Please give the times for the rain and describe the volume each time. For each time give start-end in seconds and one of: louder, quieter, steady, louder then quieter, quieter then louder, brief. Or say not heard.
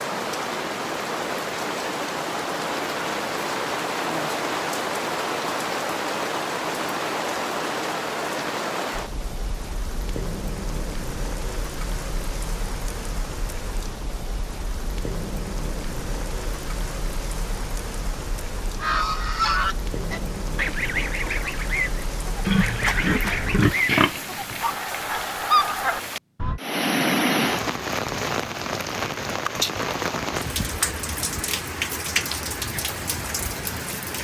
0.0-34.1 quieter then louder.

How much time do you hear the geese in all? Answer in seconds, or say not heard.
8 s.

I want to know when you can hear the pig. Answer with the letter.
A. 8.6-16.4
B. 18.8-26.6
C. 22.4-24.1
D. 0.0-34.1
C.